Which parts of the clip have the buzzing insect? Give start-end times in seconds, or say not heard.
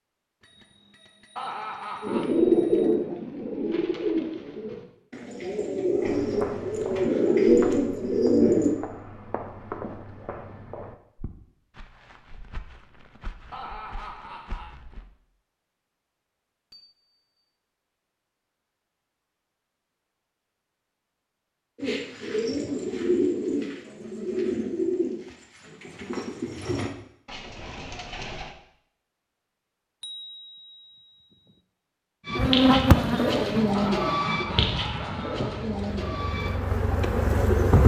32.4-37.8.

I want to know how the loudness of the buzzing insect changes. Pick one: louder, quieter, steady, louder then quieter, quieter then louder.
quieter then louder.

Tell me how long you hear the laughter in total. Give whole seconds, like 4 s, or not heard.
4 s.